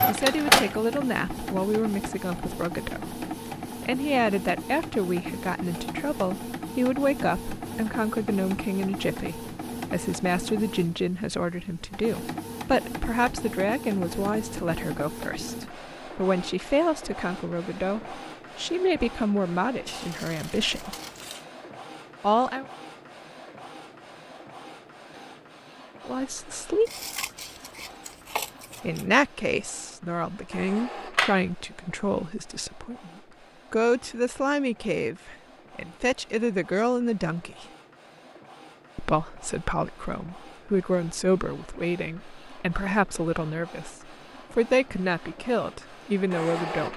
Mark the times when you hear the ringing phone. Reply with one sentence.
The ringing phone can't be heard in this clip.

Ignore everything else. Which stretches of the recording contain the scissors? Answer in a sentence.
The scissors can be heard from 19.9 to 21.4 s and from 26.9 to 29.2 s.